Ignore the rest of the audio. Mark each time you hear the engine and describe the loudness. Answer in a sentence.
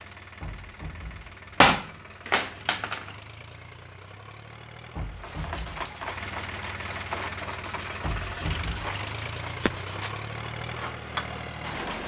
The engine can be heard from 0.0 to 12.0 s, getting louder.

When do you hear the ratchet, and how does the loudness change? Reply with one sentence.
You can't hear the ratchet here.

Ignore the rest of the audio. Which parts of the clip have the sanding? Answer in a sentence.
You can hear the sanding from 5.2 to 12.0 s.